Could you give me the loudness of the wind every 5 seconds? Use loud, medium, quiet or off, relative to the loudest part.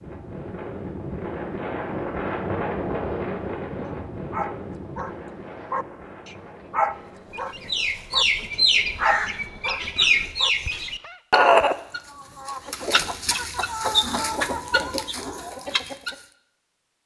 loud, quiet, off, off.